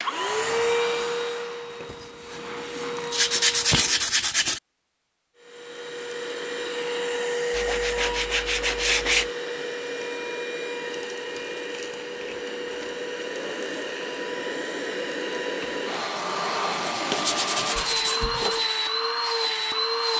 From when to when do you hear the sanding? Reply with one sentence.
You can hear the sanding from 1.9 to 4.6 s, from 7.5 to 9.3 s and from 16.9 to 18.7 s.